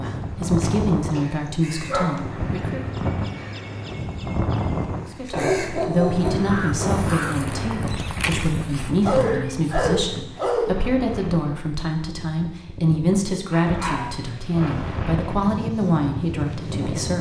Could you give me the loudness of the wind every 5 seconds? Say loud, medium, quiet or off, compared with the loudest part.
loud, loud, medium, loud.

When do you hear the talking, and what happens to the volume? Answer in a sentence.
You can hear the talking briefly from 0.0 to 2.9 s; and from 5.0 to 17.1 s, at a steady volume.